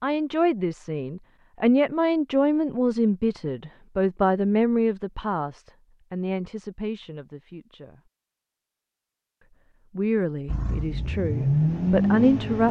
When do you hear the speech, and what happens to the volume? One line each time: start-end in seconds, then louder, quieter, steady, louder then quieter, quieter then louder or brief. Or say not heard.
0.0-8.0 quieter
9.9-12.6 brief.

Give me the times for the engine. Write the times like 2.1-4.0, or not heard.
10.4-12.6.